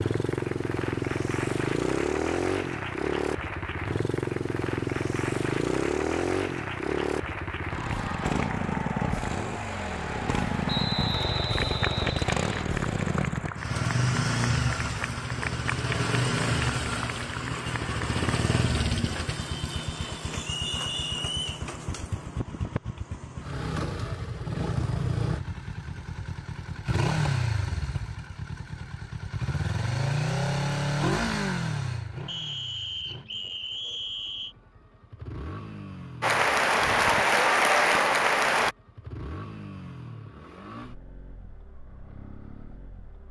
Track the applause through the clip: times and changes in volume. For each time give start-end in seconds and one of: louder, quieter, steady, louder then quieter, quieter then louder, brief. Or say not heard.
0.1-18.3 steady
36.2-38.8 brief.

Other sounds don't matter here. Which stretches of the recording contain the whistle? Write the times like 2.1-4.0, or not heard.
10.7-12.7, 20.4-21.6, 32.2-34.5.